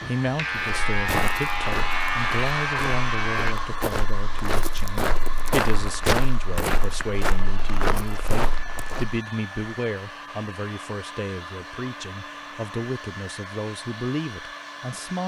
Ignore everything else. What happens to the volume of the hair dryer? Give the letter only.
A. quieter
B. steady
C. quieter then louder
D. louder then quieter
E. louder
A.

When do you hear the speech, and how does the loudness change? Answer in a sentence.
You can hear the speech from 0.1 to 15.2 s, at a steady volume.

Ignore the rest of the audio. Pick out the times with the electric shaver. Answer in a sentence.
The electric shaver can be heard from 0.0 to 3.5 s.